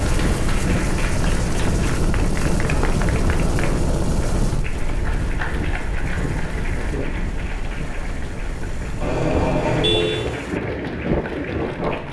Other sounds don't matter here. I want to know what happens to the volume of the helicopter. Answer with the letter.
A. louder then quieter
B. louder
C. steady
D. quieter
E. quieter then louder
D.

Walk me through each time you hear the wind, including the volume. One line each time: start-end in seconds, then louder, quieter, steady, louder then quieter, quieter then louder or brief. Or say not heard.
0.0-12.0 quieter then louder.